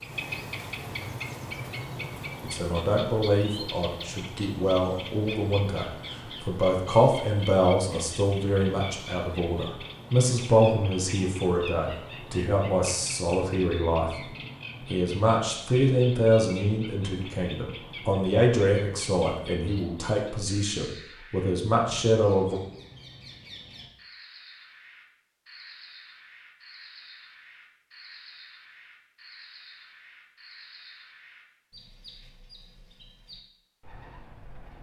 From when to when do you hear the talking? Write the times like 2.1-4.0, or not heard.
2.4-14.3, 14.9-22.6.